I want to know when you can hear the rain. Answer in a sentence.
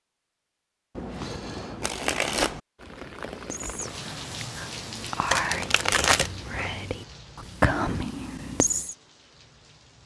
The rain can be heard from 2.8 to 10.0 s.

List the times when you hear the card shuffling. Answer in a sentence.
You can hear the card shuffling from 0.9 to 2.6 s and from 5.3 to 6.8 s.